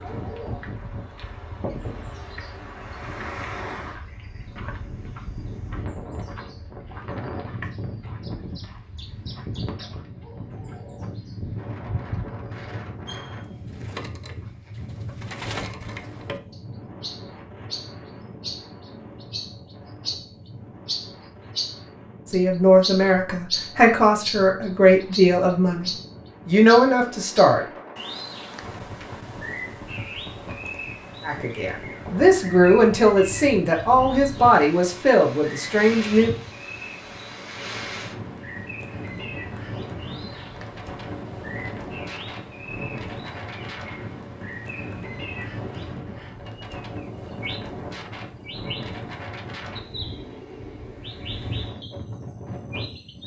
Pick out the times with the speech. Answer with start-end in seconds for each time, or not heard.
22.2-27.6, 31.2-36.3.